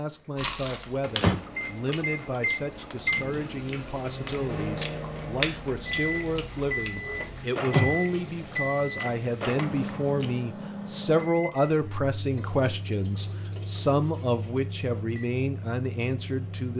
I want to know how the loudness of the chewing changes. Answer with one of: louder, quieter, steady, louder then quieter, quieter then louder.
louder then quieter.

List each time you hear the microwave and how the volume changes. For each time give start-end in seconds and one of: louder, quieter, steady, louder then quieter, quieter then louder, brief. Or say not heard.
0.0-16.7 quieter.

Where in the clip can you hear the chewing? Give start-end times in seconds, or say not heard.
0.3-10.3.